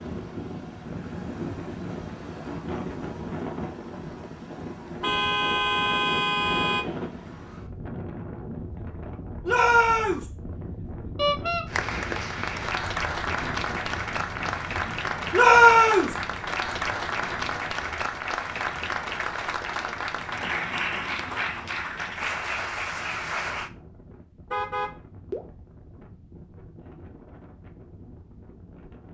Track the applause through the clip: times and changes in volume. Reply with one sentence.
The applause can be heard from 11.7 to 23.7 s, at a steady volume.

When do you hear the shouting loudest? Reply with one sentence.
The loudest moment of the shouting is at 16 seconds.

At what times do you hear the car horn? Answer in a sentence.
You can hear the car horn from 5.0 to 6.8 s, from 11.2 to 11.7 s and from 24.5 to 25.4 s.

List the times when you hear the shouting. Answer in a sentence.
You can hear the shouting from 9.4 to 10.2 s and from 15.3 to 16.1 s.